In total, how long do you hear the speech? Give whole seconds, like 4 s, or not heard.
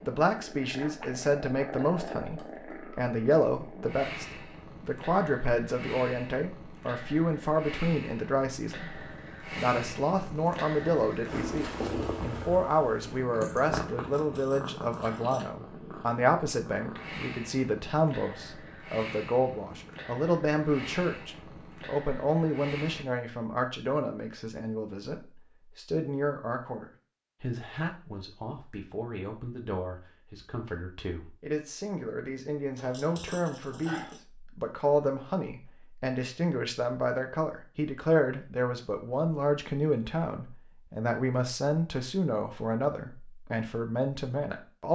45 s.